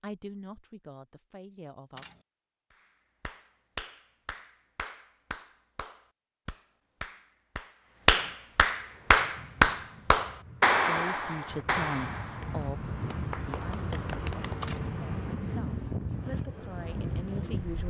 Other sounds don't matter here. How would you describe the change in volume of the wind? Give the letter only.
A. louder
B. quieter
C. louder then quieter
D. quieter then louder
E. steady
A.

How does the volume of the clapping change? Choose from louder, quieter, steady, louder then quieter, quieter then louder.
louder then quieter.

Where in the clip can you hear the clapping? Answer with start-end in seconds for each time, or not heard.
2.7-14.8.